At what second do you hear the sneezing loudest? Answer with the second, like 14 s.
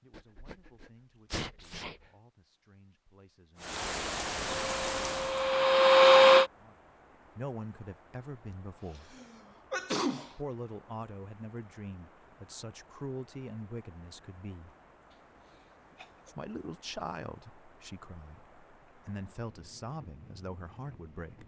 10 s.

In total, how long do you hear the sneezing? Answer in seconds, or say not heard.
5 s.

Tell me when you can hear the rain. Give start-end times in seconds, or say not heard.
3.5-21.4.